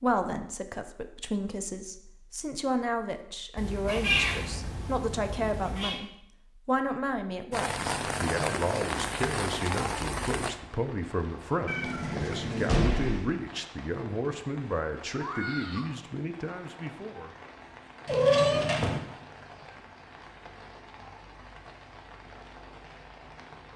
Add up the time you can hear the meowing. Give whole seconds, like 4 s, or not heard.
5 s.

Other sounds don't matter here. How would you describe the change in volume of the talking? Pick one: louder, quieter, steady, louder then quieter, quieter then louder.
steady.